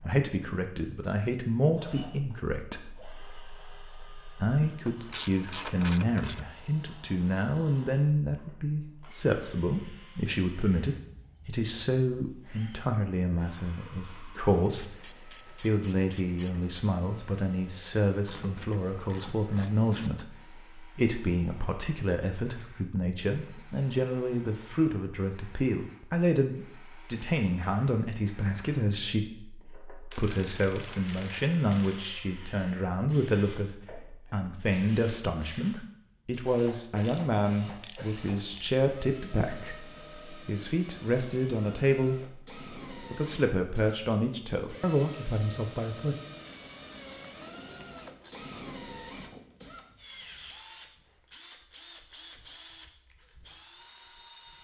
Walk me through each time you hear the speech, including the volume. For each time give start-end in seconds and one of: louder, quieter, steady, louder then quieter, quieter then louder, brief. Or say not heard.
0.0-46.1 steady.